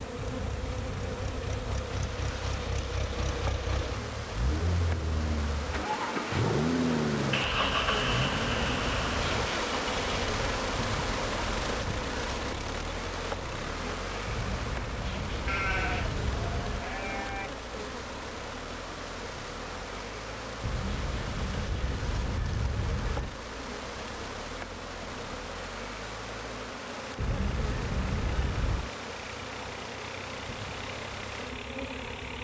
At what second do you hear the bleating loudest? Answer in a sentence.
The loudest moment of the bleating is at 16 seconds.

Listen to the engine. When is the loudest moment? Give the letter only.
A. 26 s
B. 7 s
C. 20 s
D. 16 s
B.